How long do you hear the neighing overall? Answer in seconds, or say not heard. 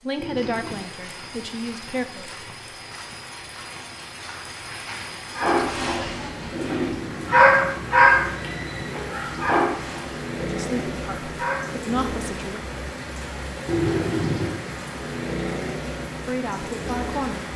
4 s.